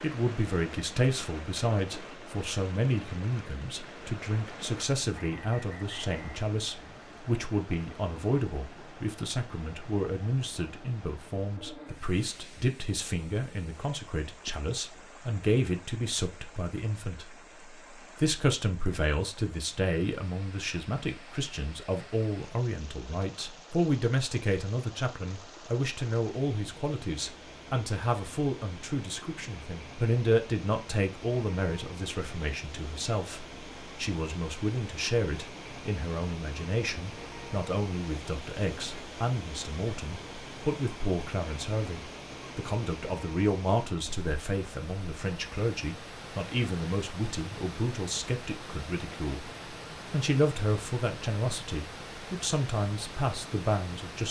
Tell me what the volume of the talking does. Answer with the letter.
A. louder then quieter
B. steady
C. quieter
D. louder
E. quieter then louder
B.